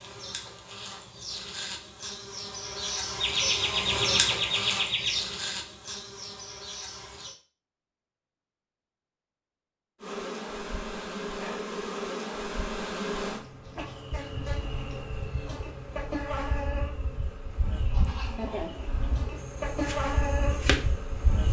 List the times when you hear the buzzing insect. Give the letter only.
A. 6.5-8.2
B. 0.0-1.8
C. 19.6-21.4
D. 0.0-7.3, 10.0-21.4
D.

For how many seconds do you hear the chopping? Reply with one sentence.
You can hear the chopping for 2 seconds altogether.